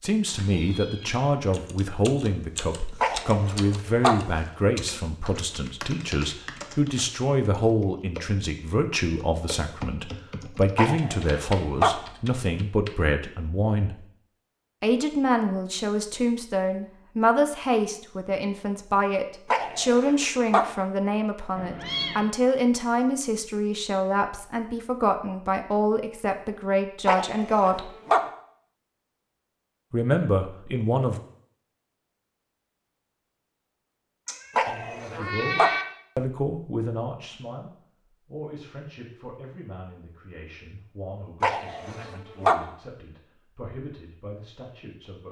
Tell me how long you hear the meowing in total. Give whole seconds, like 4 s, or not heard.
4 s.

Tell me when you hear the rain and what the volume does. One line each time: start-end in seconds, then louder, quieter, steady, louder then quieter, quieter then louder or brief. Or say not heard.
not heard.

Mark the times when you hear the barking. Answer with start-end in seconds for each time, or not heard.
3.0-4.2, 10.8-11.9, 19.5-20.7, 27.1-28.2, 34.5-35.8, 41.4-42.6.